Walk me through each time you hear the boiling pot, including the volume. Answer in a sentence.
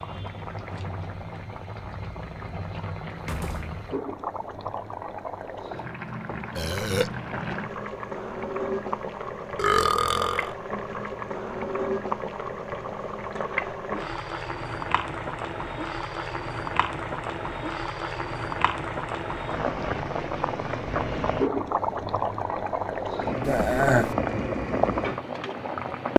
You can hear the boiling pot from 0.0 to 26.1 s, getting louder.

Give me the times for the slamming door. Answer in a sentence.
You can hear the slamming door from 3.1 to 3.9 s.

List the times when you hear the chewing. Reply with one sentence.
You can't hear the chewing here.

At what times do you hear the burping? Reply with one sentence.
You can hear the burping from 6.5 to 7.1 s, from 9.6 to 10.5 s and from 23.4 to 24.1 s.